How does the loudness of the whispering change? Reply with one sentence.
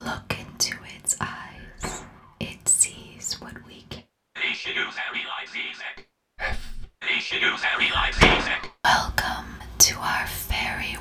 The loudness of the whispering goes up.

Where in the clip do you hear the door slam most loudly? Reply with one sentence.
The loudest moment of the door slam is at 8 seconds.